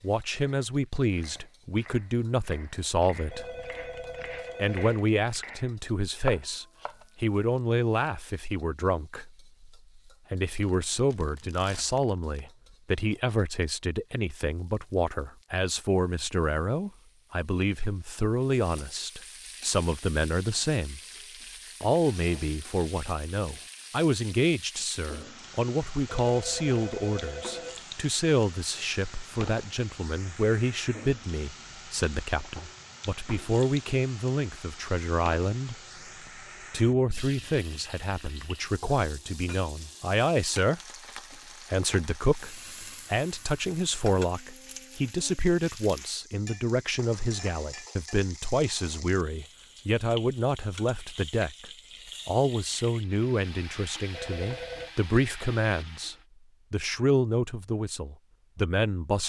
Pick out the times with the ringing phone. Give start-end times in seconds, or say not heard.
3.3-5.0, 26.1-27.9, 54.1-54.9.